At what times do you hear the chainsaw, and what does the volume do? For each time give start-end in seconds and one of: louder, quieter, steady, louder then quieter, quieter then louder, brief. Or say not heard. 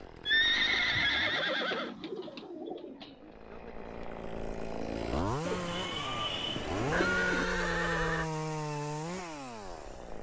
0.0-10.1 louder.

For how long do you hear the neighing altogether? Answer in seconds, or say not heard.
3 s.